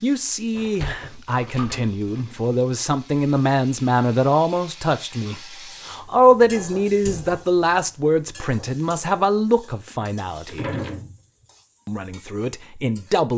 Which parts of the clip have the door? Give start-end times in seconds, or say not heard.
0.5-2.2, 7.0-7.4, 10.0-11.2.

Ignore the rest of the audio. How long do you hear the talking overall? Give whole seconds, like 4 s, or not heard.
12 s.